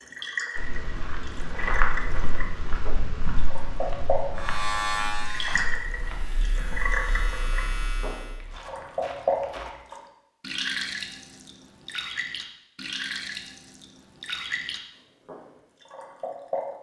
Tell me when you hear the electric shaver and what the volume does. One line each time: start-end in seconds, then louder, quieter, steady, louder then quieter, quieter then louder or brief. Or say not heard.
4.3-8.4 quieter then louder.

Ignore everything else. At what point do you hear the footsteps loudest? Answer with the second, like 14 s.
2 s.